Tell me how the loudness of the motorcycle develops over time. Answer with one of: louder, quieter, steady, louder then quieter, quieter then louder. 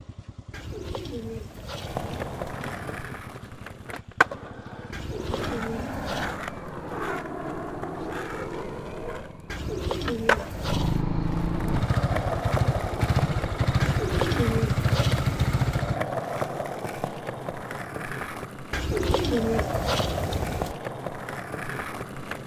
louder.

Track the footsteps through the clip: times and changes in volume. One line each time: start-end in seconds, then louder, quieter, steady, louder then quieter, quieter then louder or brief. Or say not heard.
not heard.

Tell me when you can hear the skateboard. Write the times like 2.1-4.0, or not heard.
1.8-22.4.